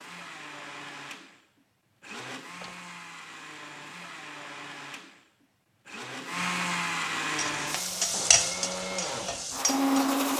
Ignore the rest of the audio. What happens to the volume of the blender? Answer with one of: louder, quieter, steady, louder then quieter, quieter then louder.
louder.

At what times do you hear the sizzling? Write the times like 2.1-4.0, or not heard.
7.2-10.2.